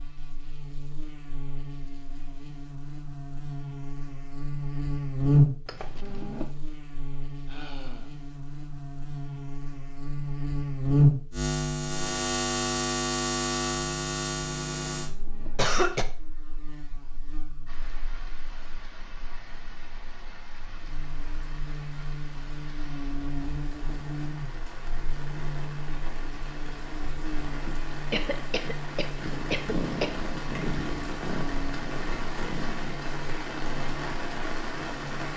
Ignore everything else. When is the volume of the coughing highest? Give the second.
16 s.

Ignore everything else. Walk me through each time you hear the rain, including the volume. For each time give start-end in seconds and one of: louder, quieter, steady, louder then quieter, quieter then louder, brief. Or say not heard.
17.6-35.3 louder.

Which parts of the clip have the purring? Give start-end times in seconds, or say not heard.
29.2-33.0.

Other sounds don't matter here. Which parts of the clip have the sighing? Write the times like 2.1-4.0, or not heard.
7.5-8.2.